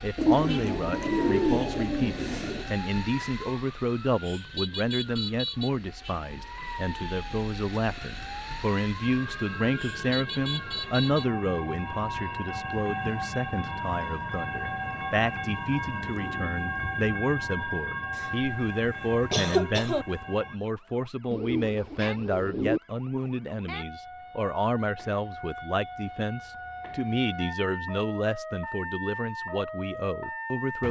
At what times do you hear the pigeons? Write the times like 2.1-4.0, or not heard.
0.1-2.7, 21.3-22.8.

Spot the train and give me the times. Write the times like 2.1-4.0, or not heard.
9.0-20.6.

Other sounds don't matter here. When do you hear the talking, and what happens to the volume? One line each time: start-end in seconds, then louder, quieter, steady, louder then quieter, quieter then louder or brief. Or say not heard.
0.0-30.8 steady.